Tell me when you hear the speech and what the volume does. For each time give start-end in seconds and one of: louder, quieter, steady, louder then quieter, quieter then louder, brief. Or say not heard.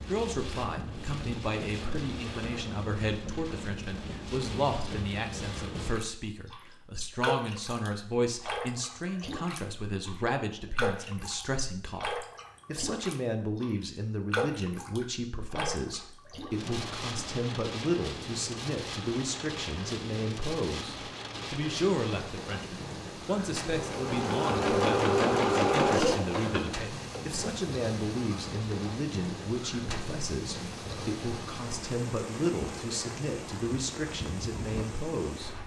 0.0-35.6 steady.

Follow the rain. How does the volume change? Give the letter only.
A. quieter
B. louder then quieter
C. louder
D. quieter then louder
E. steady
E.